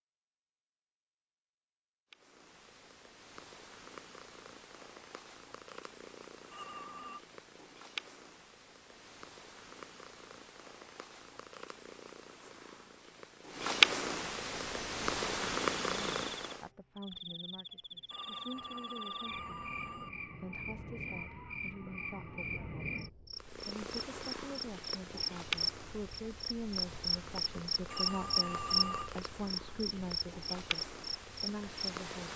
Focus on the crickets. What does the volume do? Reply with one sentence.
The loudness of the crickets goes up, then down.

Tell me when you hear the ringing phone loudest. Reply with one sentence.
The loudest moment of the ringing phone is at 29 seconds.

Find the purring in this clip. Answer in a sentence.
The purring can be heard from 2.1 to 16.7 s and from 23.4 to 32.3 s.